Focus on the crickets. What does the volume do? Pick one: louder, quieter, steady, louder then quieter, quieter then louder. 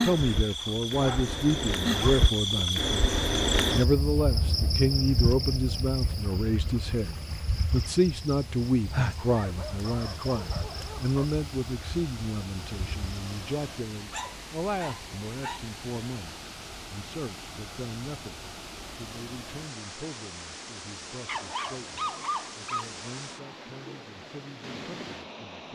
quieter.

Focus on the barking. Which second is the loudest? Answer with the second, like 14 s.
22 s.